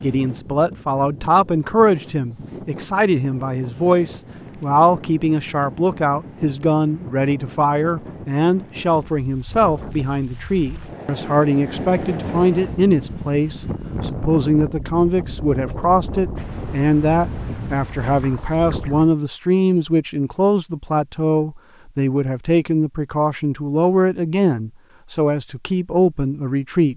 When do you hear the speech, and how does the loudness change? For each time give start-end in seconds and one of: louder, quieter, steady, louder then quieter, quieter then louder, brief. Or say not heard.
0.0-26.9 steady.